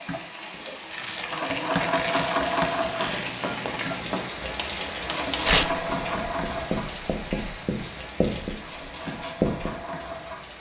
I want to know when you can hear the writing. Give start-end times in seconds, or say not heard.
2.6-9.8.